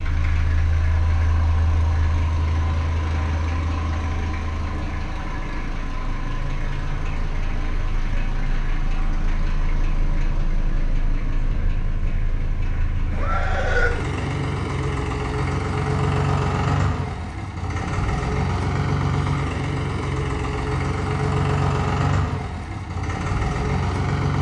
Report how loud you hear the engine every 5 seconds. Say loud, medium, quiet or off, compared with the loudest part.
medium, medium, medium, loud, loud.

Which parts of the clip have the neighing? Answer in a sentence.
The neighing can be heard from 13.1 to 13.9 s.